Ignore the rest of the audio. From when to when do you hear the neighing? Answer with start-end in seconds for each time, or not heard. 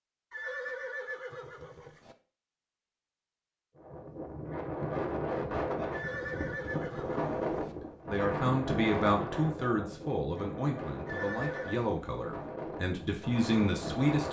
0.3-2.1, 5.9-7.8, 11.1-11.8.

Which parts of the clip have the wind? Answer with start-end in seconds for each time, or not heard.
3.8-14.2.